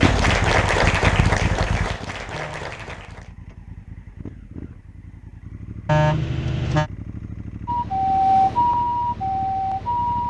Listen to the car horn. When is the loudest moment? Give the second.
6 s.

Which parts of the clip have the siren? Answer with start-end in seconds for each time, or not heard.
7.7-10.2.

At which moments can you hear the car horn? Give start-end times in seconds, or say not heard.
2.3-3.0, 5.8-6.9.